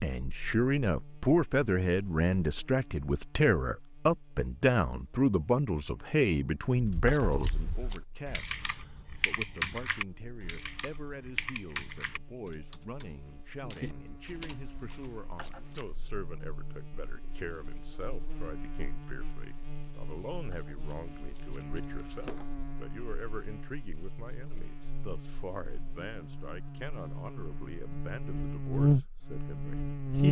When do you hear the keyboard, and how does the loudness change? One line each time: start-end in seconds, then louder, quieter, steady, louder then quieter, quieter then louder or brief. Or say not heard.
6.8-15.2 louder then quieter.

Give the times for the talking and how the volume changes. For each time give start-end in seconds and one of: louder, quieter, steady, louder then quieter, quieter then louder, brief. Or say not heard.
0.0-30.2 quieter.